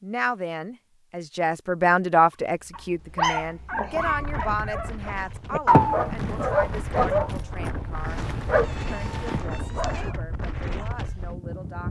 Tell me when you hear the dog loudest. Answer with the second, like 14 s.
6 s.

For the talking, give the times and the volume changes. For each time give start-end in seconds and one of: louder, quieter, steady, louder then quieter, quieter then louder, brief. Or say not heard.
0.0-11.8 quieter.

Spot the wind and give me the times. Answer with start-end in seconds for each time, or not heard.
3.9-11.8.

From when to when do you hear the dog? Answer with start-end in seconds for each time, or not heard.
2.7-10.1.